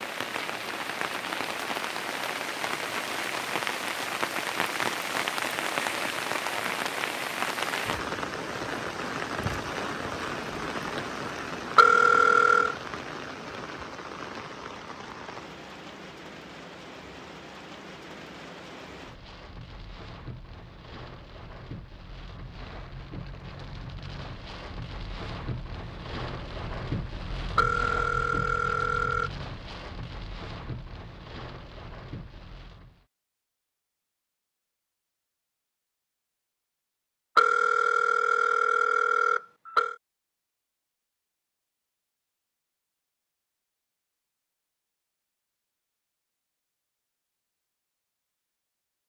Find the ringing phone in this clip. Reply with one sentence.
The ringing phone can be heard from 11.8 to 12.8 s, from 27.6 to 29.3 s and from 37.4 to 40.0 s.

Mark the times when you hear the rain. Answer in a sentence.
The rain can be heard from 0.0 to 33.0 s.